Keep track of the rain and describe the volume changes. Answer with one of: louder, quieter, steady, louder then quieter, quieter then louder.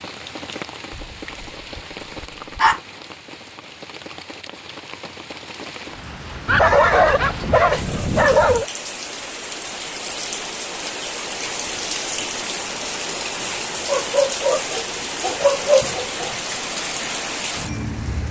louder.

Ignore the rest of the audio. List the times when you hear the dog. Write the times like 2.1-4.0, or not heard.
0.9-2.8, 6.5-8.7, 13.8-16.4.